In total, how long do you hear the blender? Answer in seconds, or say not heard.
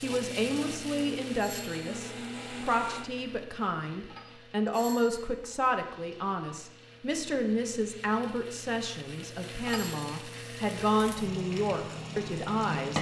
3 s.